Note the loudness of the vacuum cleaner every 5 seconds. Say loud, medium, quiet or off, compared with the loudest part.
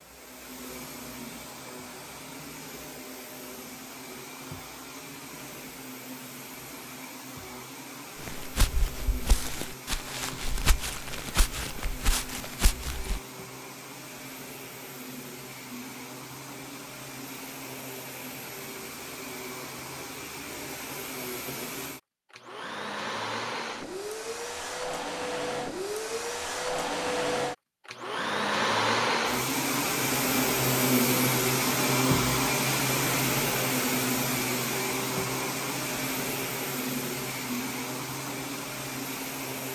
quiet, quiet, quiet, quiet, medium, loud, loud, medium.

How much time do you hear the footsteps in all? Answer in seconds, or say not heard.
5 s.